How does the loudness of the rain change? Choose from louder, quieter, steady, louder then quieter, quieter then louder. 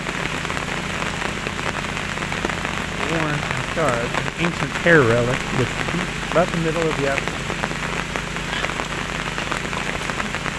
steady.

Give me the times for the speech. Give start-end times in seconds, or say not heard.
3.0-7.5.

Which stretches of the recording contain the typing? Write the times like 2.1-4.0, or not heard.
not heard.